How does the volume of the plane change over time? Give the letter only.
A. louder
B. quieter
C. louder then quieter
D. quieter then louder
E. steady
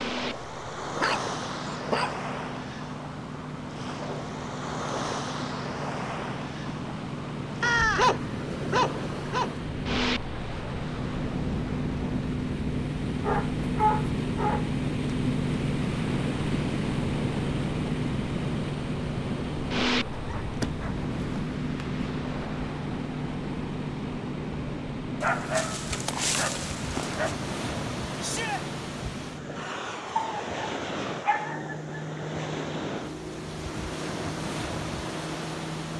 C.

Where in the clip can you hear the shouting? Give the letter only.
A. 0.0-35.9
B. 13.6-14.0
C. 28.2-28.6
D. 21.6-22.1
C.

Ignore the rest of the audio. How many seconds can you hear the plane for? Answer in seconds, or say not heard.
36 s.